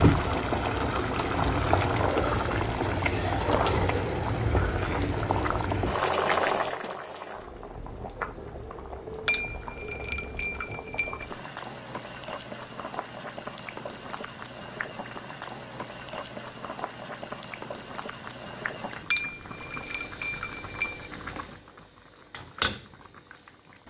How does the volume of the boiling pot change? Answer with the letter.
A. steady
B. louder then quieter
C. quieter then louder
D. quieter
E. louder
D.